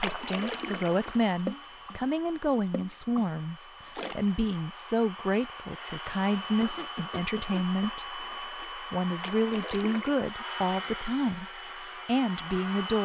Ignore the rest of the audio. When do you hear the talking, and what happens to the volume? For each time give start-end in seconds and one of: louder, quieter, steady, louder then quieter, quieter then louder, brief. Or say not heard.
0.0-13.0 steady.